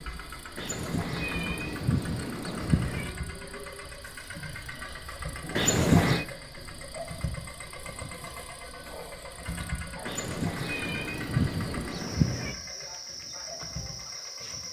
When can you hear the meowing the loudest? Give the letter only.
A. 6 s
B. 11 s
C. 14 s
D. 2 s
A.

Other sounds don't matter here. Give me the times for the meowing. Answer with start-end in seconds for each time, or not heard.
0.6-3.1, 5.5-6.2, 10.1-12.6.